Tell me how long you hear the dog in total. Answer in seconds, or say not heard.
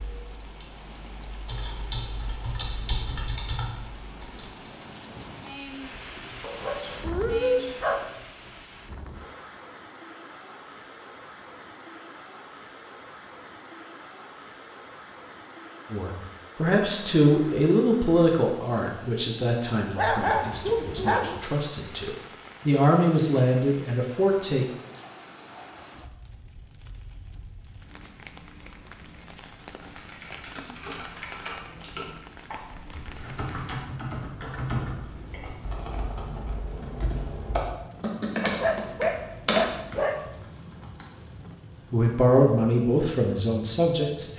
5 s.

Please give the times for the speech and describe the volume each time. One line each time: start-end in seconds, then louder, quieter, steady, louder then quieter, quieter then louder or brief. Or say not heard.
15.9-24.6 quieter then louder
41.9-44.3 brief.